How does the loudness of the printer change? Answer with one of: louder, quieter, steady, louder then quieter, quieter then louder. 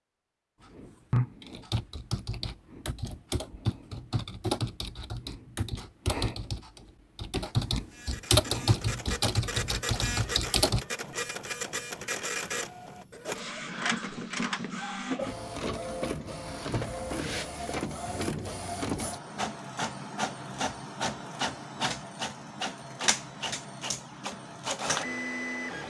steady.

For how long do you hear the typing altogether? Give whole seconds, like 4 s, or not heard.
10 s.